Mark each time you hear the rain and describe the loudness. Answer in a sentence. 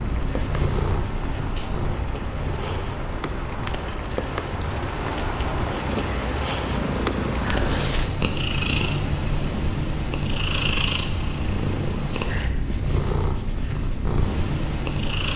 The rain can be heard from 0.0 to 8.1 s, getting louder.